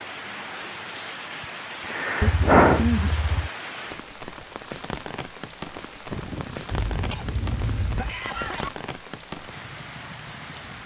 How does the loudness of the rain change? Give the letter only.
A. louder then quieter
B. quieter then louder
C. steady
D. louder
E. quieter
C.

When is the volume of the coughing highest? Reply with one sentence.
The volume of the coughing peaks at 3 seconds.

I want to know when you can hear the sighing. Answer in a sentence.
The sighing can be heard from 1.9 to 2.9 s and from 6.1 to 6.8 s.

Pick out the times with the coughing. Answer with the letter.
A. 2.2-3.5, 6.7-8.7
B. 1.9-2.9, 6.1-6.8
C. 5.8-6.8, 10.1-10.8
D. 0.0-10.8
A.